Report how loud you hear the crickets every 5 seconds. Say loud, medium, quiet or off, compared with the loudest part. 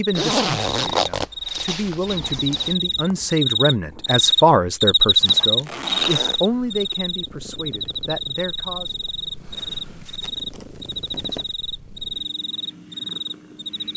loud, loud, medium.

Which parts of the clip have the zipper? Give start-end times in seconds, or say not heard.
0.1-2.8, 5.2-6.4, 9.6-11.6.